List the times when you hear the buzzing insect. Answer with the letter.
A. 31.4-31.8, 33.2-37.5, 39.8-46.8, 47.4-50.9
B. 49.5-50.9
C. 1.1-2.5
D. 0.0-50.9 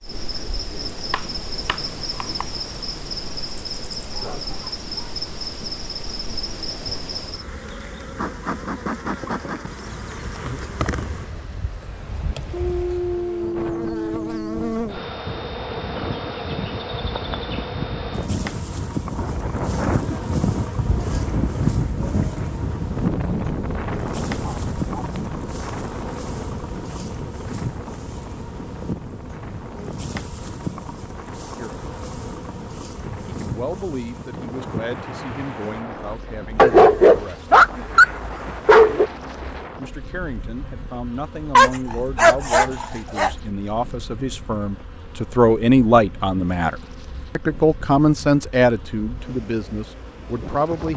D.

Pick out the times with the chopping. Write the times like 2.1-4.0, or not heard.
1.1-2.5.